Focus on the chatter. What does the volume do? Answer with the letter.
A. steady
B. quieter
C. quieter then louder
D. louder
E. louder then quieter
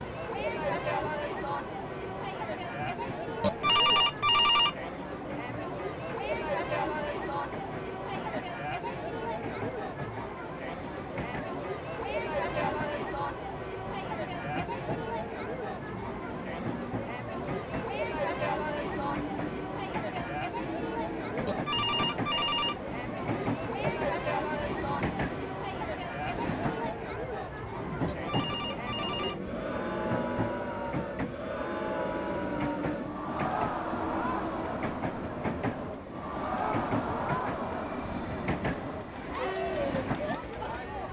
A.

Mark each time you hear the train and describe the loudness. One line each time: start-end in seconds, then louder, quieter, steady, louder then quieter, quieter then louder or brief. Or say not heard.
0.0-41.0 louder.